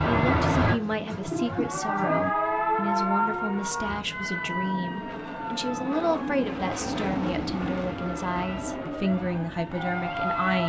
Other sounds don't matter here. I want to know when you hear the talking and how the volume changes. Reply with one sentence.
You can hear the talking from 0.1 to 10.6 s, at a steady volume.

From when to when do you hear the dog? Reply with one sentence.
The dog can't be heard in this clip.